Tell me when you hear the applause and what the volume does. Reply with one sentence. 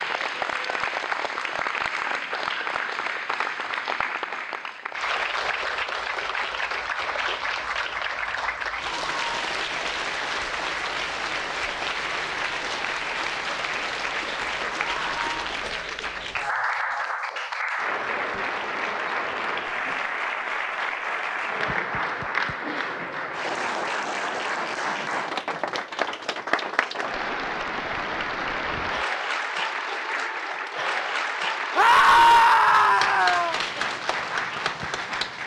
The applause can be heard from 0.0 to 35.4 s, at a steady volume.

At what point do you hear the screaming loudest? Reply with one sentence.
The loudest moment of the screaming is at 32 seconds.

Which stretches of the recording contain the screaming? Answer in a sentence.
The screaming can be heard from 8.8 to 9.5 s, from 14.8 to 15.2 s and from 31.8 to 33.5 s.